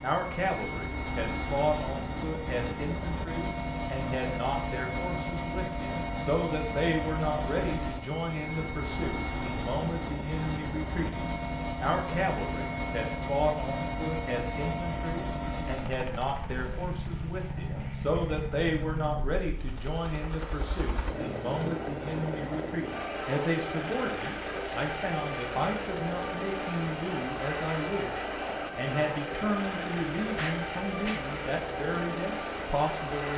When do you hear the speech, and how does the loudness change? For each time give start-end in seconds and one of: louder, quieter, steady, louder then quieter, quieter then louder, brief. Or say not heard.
0.0-33.3 steady.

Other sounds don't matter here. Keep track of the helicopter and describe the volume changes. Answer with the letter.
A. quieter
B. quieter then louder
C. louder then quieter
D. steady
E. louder
D.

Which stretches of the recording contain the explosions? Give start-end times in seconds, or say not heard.
30.4-31.2.